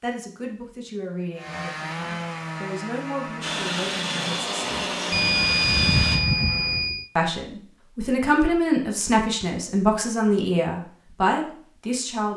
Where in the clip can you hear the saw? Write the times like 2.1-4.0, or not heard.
1.4-6.9.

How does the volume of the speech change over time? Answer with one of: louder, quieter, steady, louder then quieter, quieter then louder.
louder.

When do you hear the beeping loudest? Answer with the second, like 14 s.
6 s.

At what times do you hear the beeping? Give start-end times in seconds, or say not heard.
5.1-7.0.